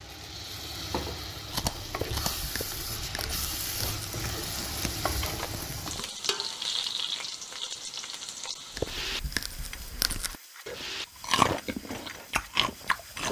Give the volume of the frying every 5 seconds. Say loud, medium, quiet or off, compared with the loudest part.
loud, loud, medium.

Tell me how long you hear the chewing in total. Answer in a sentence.
You can hear the chewing for 9 seconds altogether.